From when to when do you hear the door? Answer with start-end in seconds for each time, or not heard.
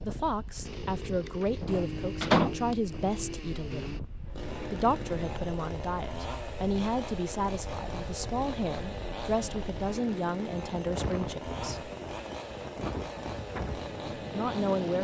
1.4-2.5.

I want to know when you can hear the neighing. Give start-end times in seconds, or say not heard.
not heard.